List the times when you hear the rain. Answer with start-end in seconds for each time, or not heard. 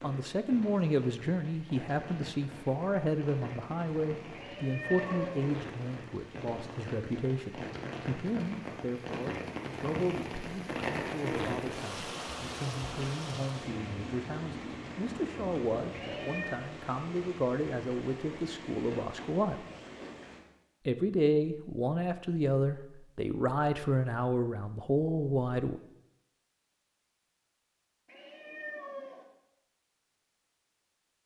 0.0-20.4.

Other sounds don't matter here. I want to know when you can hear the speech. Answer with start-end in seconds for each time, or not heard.
0.0-19.6, 20.9-25.8.